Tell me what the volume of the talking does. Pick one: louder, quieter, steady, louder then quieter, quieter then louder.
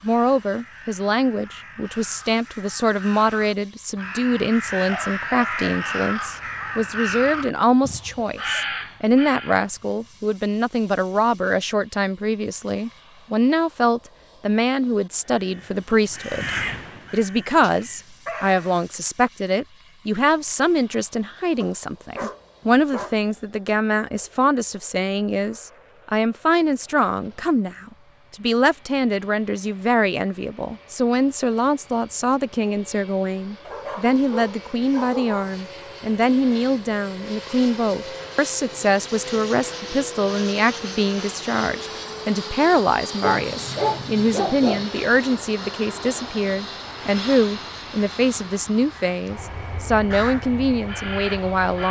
steady.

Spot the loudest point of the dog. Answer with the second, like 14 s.
44 s.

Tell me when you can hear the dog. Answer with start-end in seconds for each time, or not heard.
4.8-6.0, 17.6-18.9, 21.6-23.2, 33.6-35.5, 43.2-44.9.